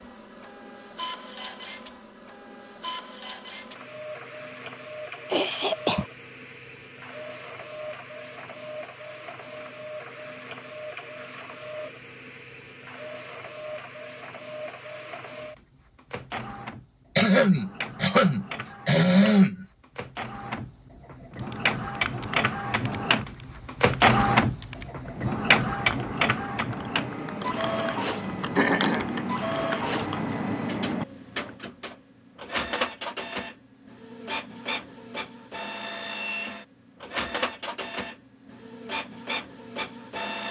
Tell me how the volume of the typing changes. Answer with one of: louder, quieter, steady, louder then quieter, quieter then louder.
louder.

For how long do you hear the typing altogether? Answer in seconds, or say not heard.
10 s.